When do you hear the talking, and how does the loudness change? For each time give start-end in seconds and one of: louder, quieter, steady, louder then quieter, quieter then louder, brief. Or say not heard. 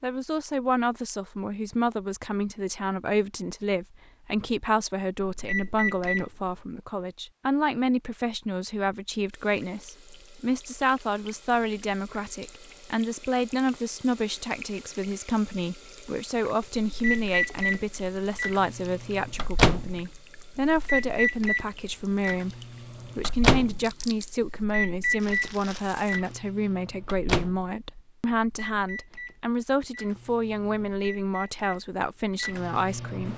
0.0-33.3 steady.